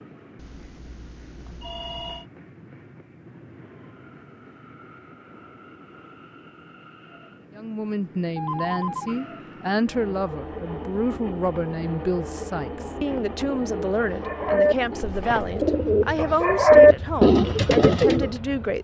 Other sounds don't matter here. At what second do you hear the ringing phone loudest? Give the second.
9 s.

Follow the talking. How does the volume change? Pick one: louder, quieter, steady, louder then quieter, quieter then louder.
steady.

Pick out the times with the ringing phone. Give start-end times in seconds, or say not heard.
0.3-2.2, 8.3-9.2, 15.0-15.7.